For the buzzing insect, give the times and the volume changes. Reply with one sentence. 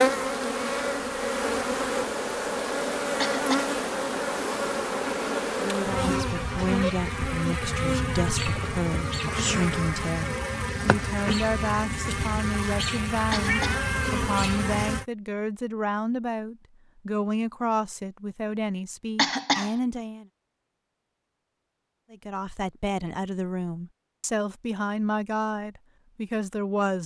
You can hear the buzzing insect from 0.0 to 15.1 s, at a steady volume.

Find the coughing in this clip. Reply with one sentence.
The coughing can be heard from 3.2 to 3.8 s, from 13.3 to 13.8 s and from 19.1 to 19.8 s.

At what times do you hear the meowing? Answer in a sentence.
You can hear the meowing from 13.4 to 14.2 s.